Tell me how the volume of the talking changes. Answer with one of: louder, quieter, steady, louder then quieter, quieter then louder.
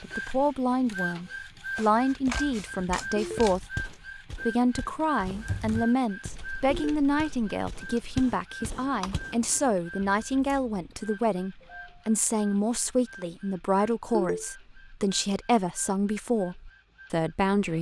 steady.